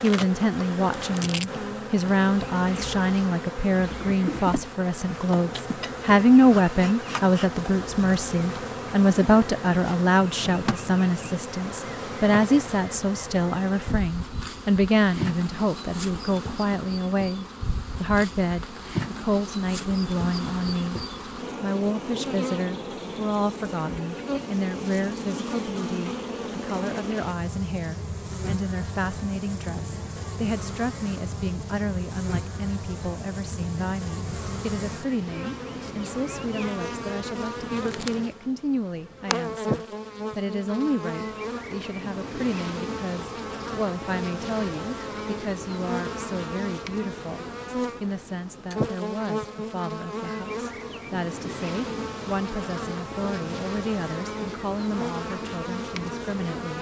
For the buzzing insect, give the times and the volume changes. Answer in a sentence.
You can hear the buzzing insect from 0.0 to 56.7 s, at a steady volume.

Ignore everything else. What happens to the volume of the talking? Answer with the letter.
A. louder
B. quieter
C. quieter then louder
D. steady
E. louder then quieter
B.